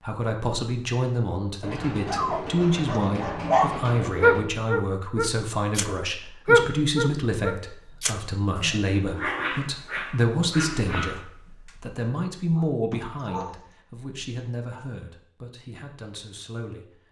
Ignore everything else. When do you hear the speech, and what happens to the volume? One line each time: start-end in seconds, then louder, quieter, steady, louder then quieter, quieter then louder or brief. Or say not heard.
0.0-16.9 quieter.